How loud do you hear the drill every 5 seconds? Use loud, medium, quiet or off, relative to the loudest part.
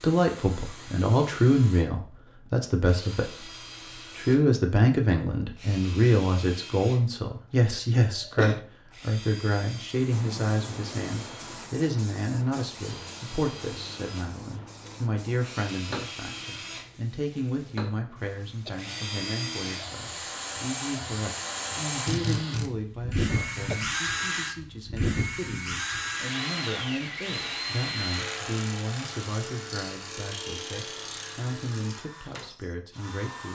quiet, quiet, quiet, medium, loud, loud, medium.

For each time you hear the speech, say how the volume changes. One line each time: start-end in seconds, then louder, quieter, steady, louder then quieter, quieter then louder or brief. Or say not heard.
0.0-33.5 quieter.